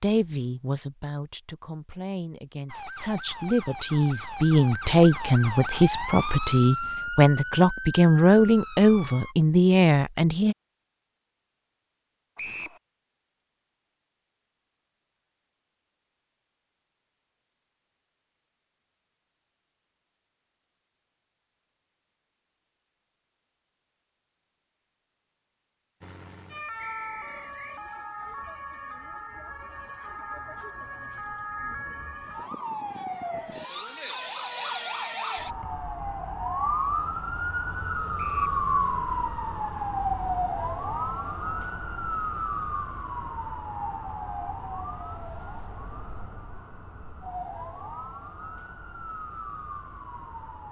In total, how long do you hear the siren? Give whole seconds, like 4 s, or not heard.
31 s.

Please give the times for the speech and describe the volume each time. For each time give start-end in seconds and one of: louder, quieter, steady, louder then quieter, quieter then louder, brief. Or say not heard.
0.0-10.6 louder.